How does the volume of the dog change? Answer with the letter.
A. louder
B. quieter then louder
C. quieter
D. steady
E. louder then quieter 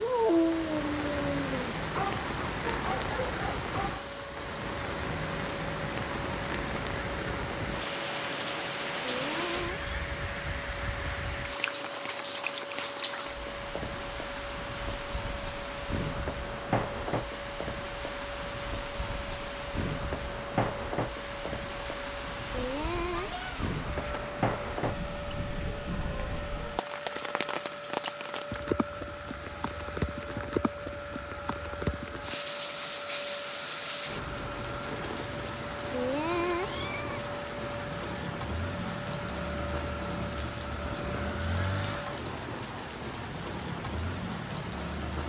C.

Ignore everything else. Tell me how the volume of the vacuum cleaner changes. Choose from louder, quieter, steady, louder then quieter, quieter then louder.
steady.